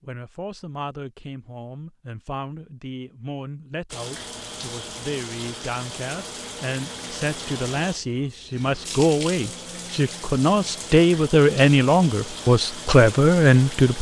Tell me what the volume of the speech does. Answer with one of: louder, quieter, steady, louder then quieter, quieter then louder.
louder.